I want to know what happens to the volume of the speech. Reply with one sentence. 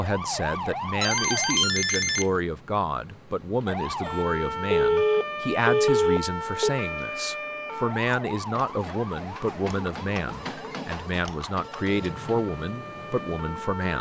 The loudness of the speech stays about the same.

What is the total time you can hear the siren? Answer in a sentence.
You can hear the siren for 12 seconds altogether.